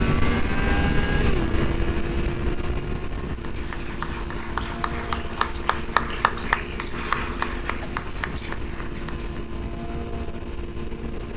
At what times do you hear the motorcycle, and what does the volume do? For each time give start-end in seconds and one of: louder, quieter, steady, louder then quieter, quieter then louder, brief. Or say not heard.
0.0-11.3 quieter.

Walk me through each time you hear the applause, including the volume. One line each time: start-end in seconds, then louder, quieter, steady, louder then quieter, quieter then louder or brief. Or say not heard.
3.3-9.4 louder then quieter.